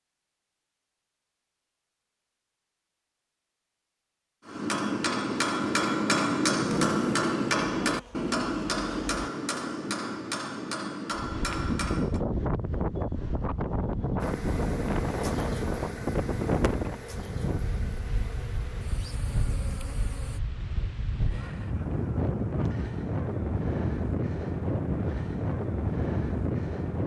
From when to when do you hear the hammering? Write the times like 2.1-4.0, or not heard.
4.5-12.2.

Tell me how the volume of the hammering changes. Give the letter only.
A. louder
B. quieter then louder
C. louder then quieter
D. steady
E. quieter
E.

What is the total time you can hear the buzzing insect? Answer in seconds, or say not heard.
9 s.